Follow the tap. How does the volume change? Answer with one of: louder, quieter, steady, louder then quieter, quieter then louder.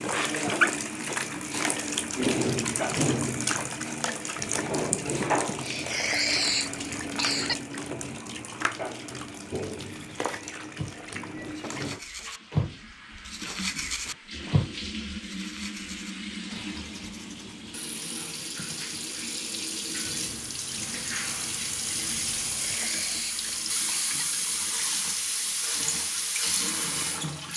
quieter then louder.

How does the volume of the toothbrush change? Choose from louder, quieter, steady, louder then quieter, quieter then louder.
louder then quieter.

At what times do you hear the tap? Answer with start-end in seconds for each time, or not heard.
0.0-27.5.